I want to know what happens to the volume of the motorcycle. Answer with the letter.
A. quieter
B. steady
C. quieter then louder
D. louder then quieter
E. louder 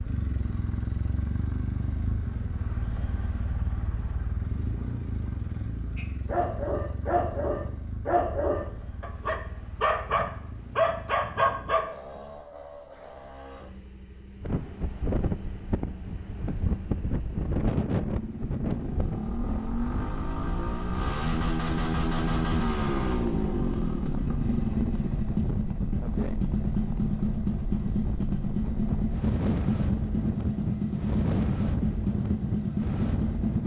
C.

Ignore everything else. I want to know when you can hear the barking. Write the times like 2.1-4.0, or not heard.
6.0-11.9.